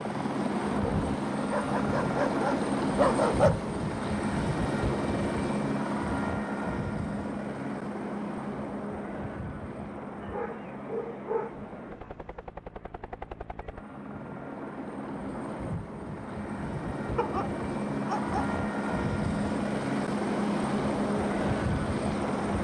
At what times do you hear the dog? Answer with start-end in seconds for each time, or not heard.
1.5-3.6, 10.2-12.1, 17.1-18.6.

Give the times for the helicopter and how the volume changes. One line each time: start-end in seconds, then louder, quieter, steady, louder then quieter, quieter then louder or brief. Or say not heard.
0.0-22.6 quieter then louder.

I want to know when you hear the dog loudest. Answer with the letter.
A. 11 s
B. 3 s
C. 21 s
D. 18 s
B.